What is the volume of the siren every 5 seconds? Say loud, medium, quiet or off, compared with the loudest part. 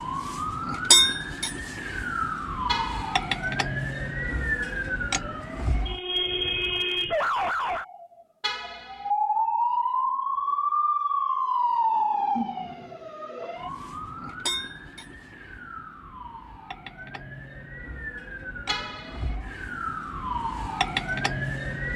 loud, loud, loud, quiet, loud.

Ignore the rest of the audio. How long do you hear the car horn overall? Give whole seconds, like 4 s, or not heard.
2 s.